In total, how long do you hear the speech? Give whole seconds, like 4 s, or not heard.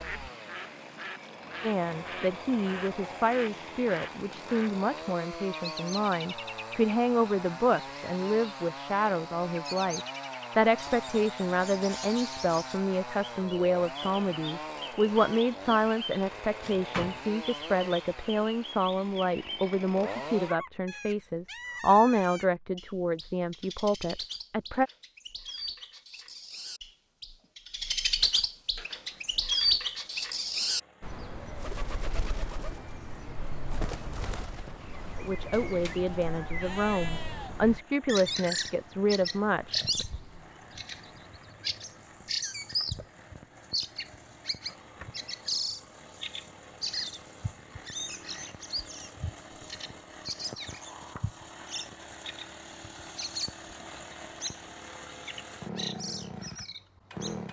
28 s.